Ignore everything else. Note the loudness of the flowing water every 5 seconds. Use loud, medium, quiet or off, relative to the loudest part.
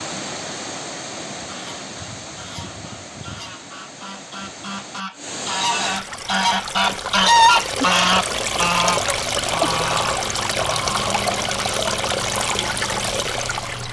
medium, loud, loud.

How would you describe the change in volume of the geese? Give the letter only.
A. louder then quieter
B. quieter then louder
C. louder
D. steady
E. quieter
A.